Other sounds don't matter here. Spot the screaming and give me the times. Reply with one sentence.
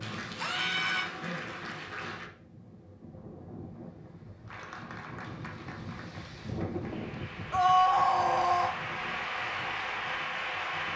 The screaming can be heard from 0.4 to 1.1 s and from 7.5 to 8.8 s.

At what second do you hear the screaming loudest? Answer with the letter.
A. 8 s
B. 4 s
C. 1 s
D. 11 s
A.